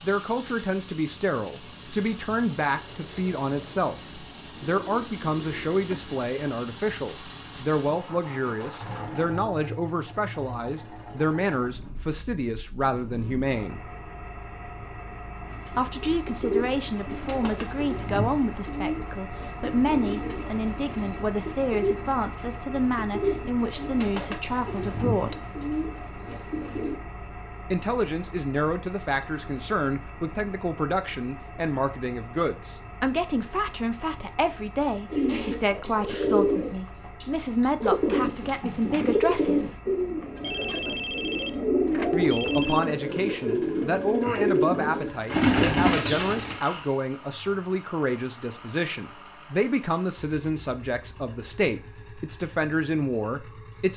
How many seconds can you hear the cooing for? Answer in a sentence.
You can hear the cooing for 23 seconds altogether.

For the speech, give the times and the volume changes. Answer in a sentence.
You can hear the speech from 0.0 to 13.8 s, at a steady volume; from 15.8 to 25.4 s, at a steady volume; from 27.7 to 39.7 s, at a steady volume; and from 42.1 to 53.9 s, at a steady volume.